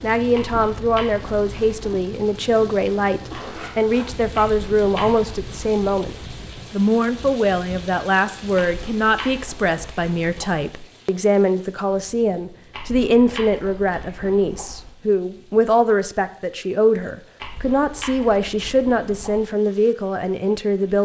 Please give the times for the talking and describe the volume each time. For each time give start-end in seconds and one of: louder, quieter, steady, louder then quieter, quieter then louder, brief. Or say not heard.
0.0-20.9 steady.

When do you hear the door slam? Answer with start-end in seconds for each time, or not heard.
not heard.